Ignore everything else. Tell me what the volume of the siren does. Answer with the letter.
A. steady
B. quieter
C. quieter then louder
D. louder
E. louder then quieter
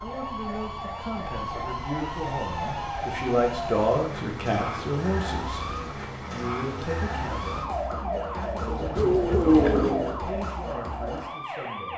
A.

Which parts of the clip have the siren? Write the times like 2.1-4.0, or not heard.
0.0-11.9.